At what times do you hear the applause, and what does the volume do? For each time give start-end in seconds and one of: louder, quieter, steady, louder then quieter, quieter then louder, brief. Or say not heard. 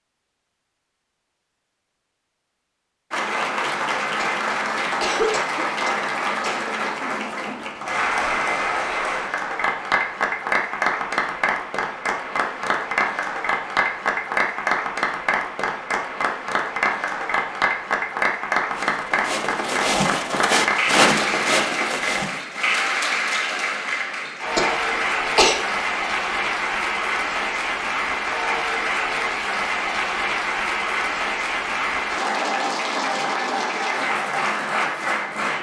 3.1-35.5 steady.